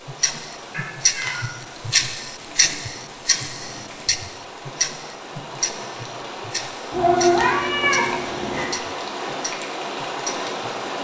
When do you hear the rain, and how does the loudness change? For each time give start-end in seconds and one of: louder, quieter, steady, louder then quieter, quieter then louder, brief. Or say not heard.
0.0-10.9 louder.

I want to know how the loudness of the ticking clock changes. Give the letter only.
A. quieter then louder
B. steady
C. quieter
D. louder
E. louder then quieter
C.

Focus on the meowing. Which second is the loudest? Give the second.
7 s.